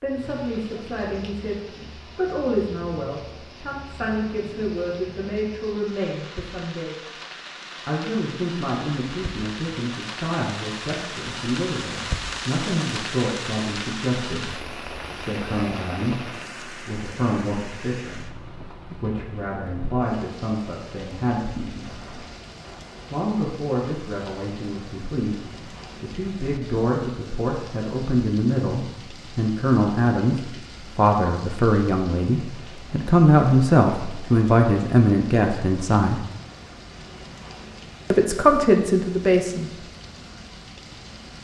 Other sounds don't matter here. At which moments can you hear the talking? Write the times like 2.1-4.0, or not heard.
0.0-7.0, 7.8-22.2, 23.1-36.2, 38.1-39.7.